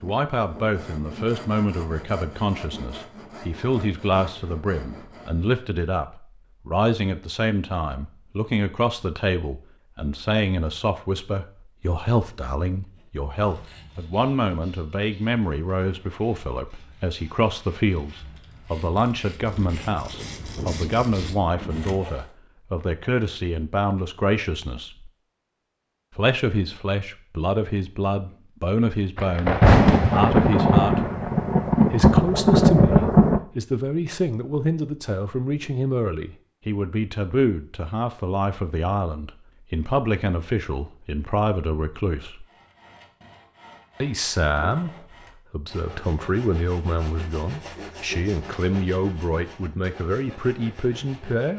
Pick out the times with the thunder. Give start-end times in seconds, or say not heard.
19.4-21.9, 29.1-33.4.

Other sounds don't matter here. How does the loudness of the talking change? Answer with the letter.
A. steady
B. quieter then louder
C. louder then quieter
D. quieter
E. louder
A.